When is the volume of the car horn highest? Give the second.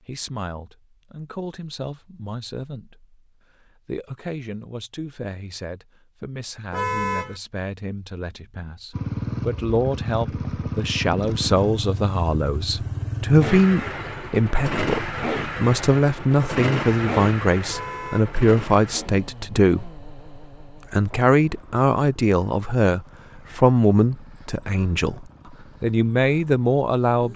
7 s.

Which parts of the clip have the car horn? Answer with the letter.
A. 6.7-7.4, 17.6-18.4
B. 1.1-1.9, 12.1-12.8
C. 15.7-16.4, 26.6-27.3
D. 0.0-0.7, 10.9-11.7
A.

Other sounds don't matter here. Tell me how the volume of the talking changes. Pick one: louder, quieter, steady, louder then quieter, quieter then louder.
louder.